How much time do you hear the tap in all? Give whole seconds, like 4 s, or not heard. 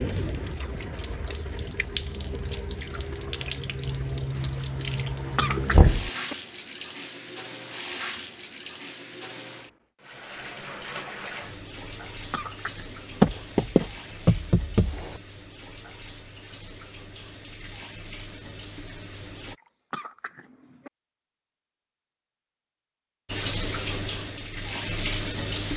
22 s.